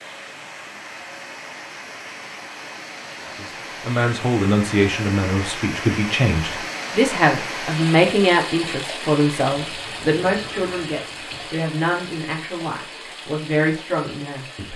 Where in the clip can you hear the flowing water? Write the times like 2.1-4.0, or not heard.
0.0-14.7.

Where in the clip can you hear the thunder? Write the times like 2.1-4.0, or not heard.
not heard.